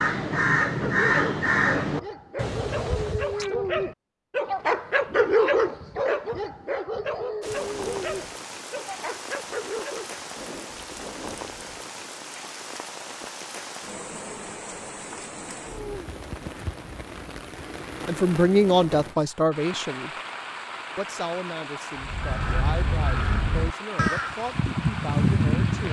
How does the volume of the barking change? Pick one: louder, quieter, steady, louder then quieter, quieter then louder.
louder then quieter.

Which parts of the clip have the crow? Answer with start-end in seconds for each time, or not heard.
0.0-3.5, 21.9-25.8.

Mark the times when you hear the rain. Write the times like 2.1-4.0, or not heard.
7.4-25.8.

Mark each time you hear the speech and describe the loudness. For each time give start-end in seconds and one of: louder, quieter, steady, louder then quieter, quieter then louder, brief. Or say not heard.
18.1-20.1 brief
20.9-25.8 steady.